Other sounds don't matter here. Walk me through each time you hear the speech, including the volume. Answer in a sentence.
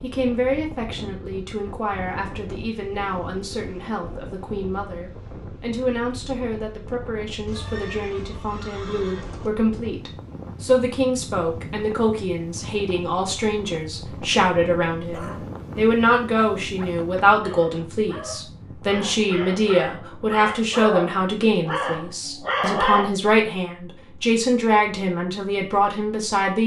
You can hear the speech from 0.0 to 26.6 s, getting louder.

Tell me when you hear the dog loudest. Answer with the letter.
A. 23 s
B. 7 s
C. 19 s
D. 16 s
A.